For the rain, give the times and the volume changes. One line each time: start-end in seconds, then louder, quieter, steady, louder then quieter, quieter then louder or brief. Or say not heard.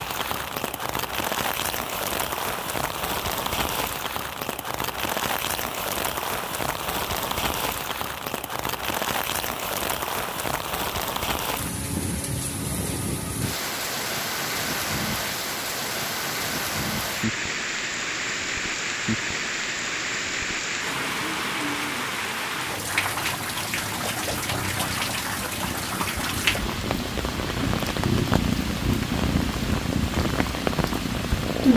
0.0-31.7 steady.